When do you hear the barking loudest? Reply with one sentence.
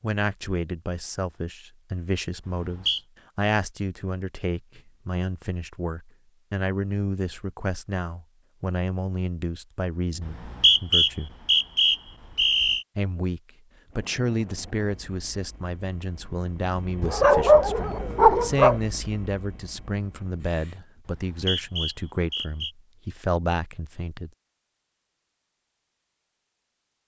The loudest moment of the barking is at 17 seconds.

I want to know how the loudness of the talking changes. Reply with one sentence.
The volume of the talking stays about the same.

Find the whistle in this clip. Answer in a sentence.
You can hear the whistle from 2.5 to 3.0 s, from 10.2 to 12.8 s and from 21.1 to 22.7 s.